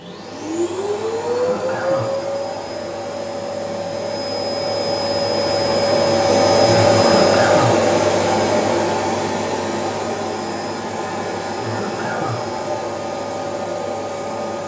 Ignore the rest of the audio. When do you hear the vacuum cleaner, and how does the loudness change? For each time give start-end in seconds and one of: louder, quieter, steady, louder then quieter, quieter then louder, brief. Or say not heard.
0.0-14.6 louder then quieter.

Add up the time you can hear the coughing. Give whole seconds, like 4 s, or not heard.
2 s.